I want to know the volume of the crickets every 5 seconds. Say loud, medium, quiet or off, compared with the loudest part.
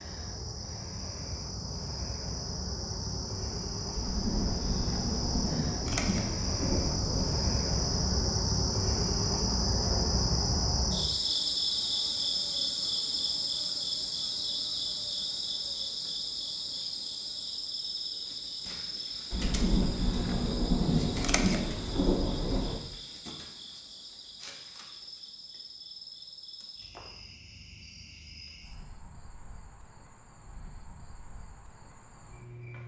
medium, loud, loud, medium, quiet, quiet, quiet.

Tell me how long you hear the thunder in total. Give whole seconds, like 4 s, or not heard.
8 s.